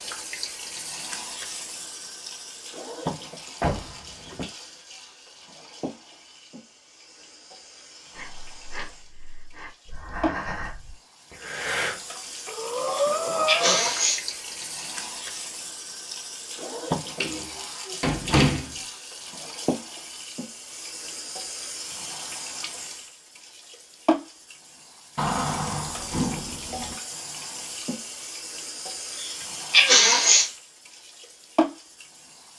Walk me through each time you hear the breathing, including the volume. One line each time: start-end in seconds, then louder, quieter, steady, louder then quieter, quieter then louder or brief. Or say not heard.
8.1-13.9 louder.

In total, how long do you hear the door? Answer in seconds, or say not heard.
4 s.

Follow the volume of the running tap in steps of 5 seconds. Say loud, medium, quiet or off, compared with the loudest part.
loud, quiet, loud, loud, loud, loud, loud.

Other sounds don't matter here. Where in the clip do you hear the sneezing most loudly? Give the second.
30 s.